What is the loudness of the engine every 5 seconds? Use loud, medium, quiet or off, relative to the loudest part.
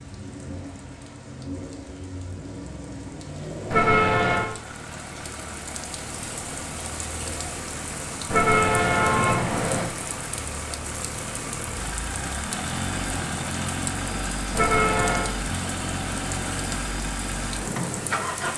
medium, medium, loud, loud.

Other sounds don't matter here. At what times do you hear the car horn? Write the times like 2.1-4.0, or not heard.
3.7-4.5, 8.3-9.9, 14.5-15.3.